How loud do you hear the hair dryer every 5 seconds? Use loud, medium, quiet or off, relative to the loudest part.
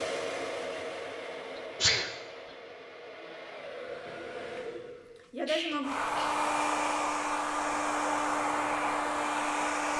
medium, loud.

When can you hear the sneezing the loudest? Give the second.
2 s.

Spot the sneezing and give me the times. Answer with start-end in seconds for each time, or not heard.
1.6-2.1, 5.5-6.3.